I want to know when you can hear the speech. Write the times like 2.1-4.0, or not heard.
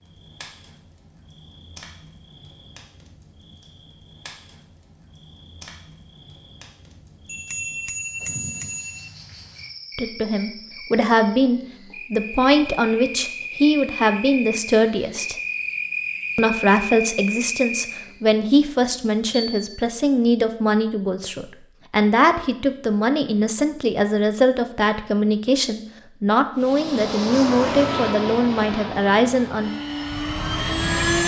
9.9-15.3, 16.4-29.7.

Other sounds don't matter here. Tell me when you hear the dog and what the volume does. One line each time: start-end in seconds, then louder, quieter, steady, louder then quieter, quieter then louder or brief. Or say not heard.
not heard.